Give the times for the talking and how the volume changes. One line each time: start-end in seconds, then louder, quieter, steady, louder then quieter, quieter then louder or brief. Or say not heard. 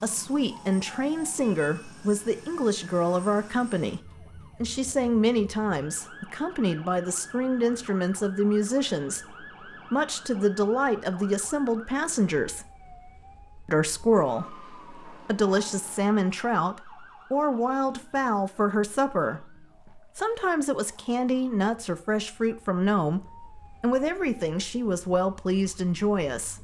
0.0-12.7 steady
13.7-26.5 steady.